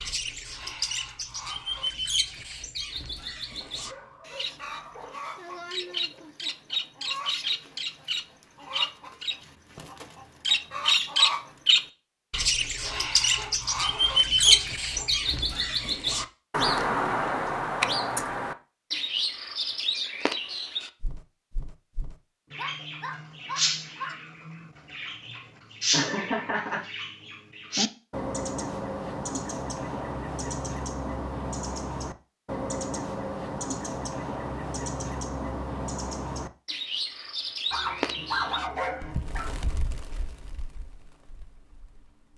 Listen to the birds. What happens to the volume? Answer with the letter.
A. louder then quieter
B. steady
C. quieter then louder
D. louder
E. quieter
A.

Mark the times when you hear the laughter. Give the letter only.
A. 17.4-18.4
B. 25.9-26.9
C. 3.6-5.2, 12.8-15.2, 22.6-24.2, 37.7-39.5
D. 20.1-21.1
B.